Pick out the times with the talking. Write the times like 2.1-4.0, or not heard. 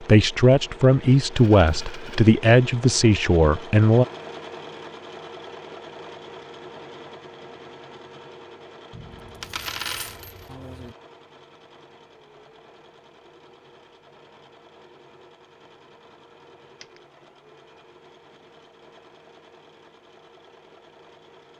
0.0-4.0.